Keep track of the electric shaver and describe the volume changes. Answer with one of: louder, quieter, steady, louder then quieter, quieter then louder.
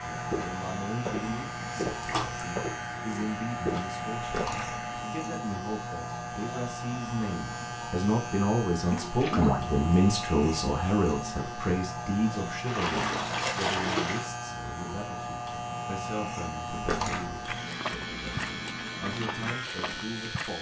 steady.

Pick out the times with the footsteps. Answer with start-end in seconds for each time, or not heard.
0.1-4.5, 17.4-20.5.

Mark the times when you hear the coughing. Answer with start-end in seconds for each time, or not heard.
not heard.